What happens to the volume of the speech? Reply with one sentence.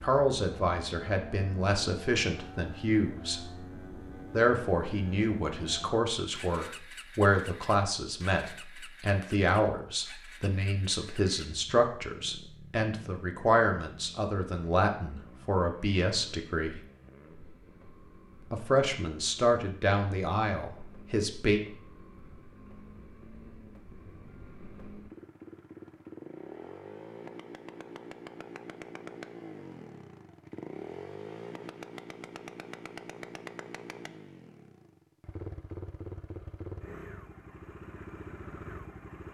The loudness of the speech stays about the same.